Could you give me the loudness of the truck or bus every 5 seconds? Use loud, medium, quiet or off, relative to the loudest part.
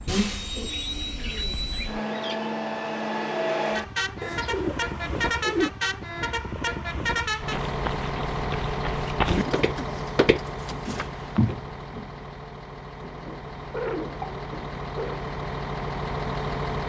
loud, loud, medium, loud.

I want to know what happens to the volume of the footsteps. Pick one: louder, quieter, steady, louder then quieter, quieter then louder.
louder.